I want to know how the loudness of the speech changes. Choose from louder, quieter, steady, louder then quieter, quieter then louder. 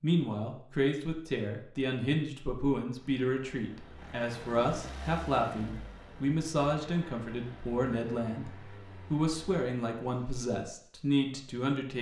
steady.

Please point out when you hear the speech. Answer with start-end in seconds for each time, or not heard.
0.0-11.9.